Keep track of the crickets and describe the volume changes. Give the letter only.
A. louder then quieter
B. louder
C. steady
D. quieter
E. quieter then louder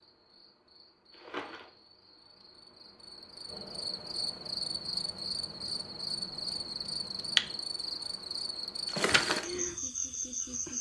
B.